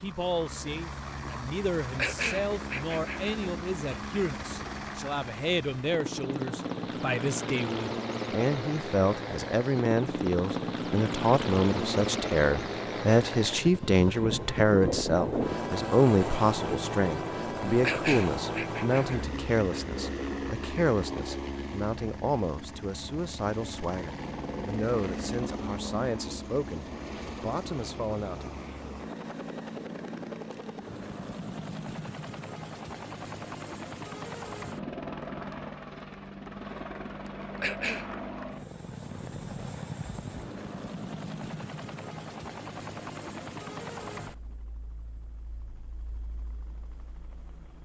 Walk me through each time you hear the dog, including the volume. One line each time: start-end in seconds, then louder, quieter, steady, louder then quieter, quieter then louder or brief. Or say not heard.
not heard.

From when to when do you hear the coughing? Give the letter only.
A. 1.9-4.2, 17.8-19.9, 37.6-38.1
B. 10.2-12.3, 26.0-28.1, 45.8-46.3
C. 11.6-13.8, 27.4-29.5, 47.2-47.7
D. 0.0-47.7
A.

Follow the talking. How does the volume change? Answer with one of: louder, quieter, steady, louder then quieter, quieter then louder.
louder then quieter.